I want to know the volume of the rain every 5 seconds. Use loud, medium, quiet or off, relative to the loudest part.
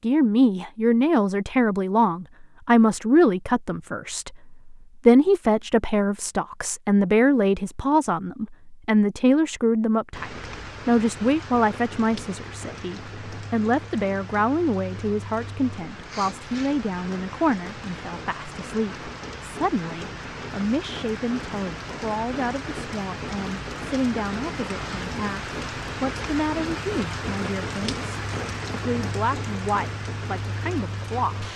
off, off, medium, medium, loud, loud, loud.